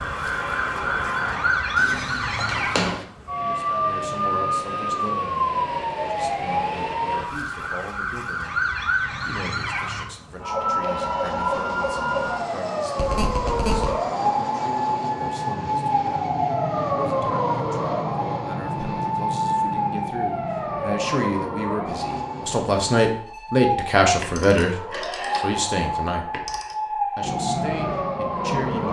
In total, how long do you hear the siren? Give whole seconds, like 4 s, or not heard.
29 s.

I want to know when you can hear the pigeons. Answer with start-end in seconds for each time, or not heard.
not heard.